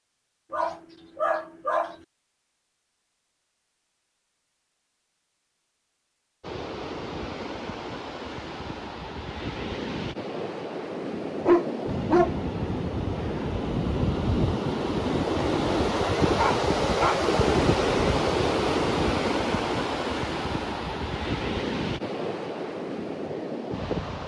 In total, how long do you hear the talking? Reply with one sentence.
You can't hear the talking here.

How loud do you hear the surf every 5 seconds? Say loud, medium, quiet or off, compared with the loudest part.
off, medium, medium, loud, medium.